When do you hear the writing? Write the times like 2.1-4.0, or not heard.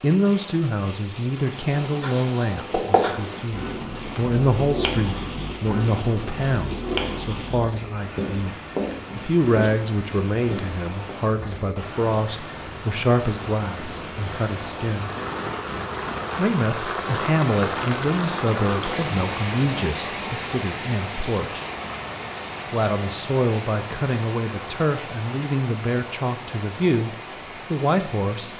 1.6-11.2.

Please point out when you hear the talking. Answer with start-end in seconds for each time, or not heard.
0.0-8.6, 9.2-15.1, 16.4-21.6, 22.6-28.5.